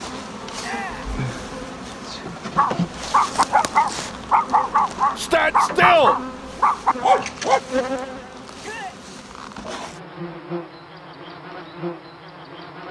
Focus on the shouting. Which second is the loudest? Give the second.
6 s.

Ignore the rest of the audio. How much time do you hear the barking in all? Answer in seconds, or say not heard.
5 s.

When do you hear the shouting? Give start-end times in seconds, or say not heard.
0.6-1.1, 5.2-6.2, 8.6-9.0.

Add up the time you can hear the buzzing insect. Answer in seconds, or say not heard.
13 s.